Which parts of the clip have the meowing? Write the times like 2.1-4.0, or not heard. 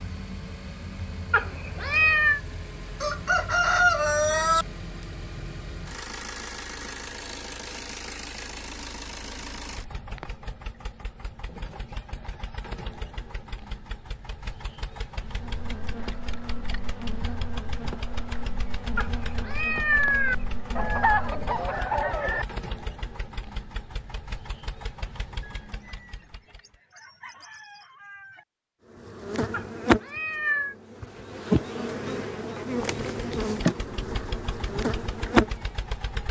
1.3-2.4, 18.9-20.4, 29.5-30.8.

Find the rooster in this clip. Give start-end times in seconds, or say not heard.
3.0-4.7, 20.8-22.4, 25.4-28.4.